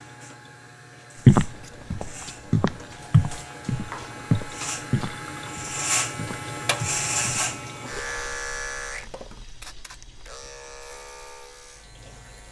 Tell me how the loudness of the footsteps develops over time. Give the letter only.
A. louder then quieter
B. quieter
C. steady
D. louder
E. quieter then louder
B.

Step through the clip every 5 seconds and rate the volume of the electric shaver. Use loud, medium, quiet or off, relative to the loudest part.
medium, loud, quiet.